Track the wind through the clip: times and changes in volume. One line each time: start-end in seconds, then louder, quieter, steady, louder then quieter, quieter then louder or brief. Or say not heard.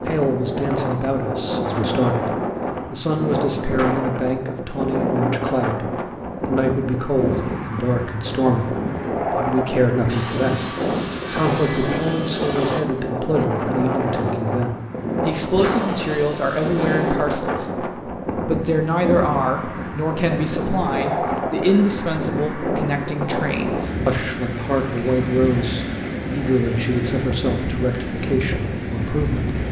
0.0-29.6 steady.